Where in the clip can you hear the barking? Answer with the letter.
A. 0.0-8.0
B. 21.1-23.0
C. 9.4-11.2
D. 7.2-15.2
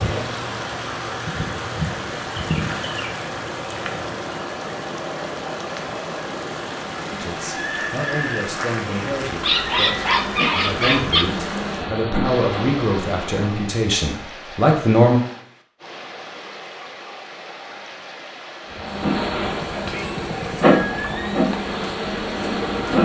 C.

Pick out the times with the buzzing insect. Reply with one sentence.
The buzzing insect can be heard from 0.0 to 4.3 s, from 8.8 to 13.4 s and from 18.7 to 23.0 s.